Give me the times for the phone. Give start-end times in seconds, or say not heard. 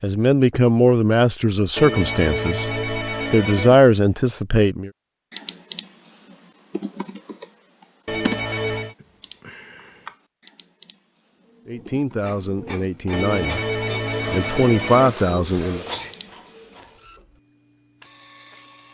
1.8-3.8, 8.1-8.9, 13.1-15.2.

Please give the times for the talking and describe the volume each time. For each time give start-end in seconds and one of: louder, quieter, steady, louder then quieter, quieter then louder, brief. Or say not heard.
0.0-4.9 quieter then louder
11.7-13.7 brief
14.3-15.8 brief.